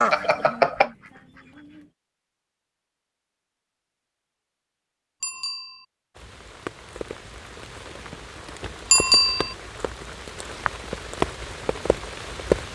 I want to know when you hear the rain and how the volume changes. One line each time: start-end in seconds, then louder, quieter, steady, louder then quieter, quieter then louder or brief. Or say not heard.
6.2-12.7 louder.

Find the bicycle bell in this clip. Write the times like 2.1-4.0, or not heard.
0.1-0.9, 5.2-5.8, 8.9-9.6.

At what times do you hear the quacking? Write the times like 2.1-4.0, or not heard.
0.0-1.9.